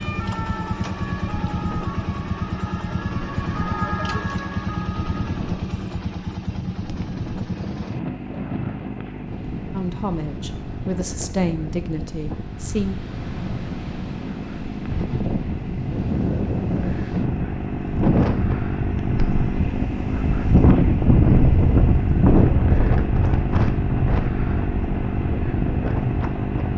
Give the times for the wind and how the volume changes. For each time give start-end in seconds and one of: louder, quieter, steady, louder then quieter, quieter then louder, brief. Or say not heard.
0.2-26.7 louder.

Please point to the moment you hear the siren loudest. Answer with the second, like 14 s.
4 s.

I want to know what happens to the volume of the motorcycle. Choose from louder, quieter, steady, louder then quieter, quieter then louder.
quieter then louder.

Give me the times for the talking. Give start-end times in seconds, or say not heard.
9.7-12.9.